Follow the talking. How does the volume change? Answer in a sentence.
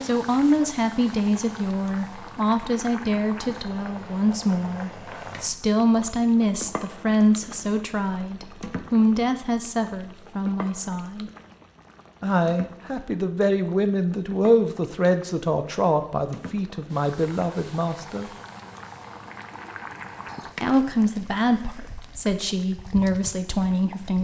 The volume of the talking stays about the same.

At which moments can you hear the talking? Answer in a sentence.
You can hear the talking from 0.0 to 11.3 s, from 12.2 to 18.3 s and from 20.6 to 24.1 s.